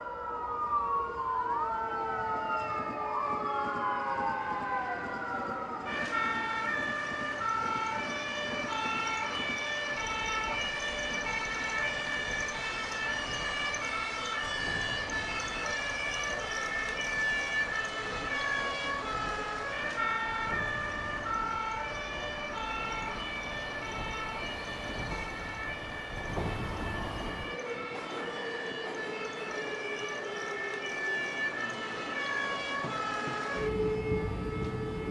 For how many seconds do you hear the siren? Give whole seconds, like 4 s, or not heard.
35 s.